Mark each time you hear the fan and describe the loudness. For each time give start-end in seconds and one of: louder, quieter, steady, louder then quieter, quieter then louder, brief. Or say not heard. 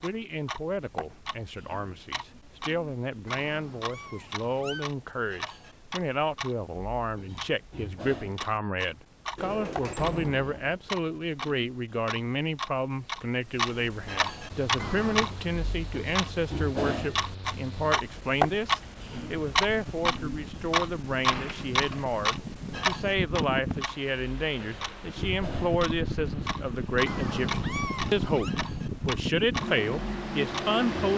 14.5-31.1 louder.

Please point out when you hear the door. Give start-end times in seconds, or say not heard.
9.3-10.8, 21.2-22.1.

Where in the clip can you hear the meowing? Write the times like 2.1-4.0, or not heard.
3.2-4.8, 14.8-15.4, 27.1-28.5.